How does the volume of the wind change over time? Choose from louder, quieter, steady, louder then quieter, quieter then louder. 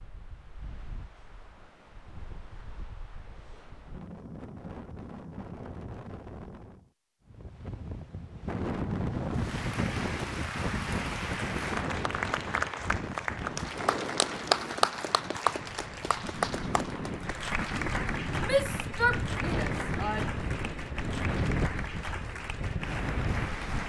louder.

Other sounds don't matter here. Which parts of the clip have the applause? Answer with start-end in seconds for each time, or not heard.
9.3-23.8.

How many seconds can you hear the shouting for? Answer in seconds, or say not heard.
2 s.